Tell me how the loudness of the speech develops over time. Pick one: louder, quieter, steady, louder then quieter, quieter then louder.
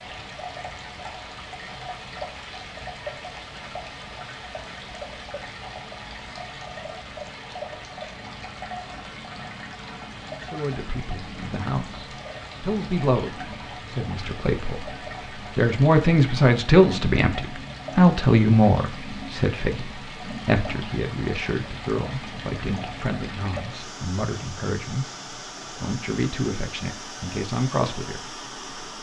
louder then quieter.